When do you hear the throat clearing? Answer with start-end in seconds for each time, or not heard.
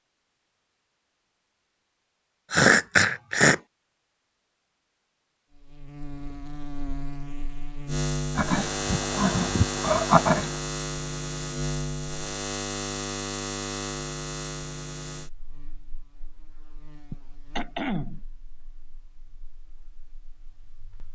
2.5-3.5, 8.3-10.5, 17.1-18.2.